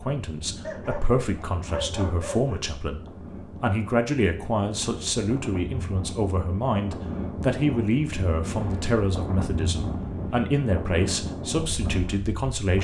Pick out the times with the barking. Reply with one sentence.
You can hear the barking from 0.6 to 2.6 s.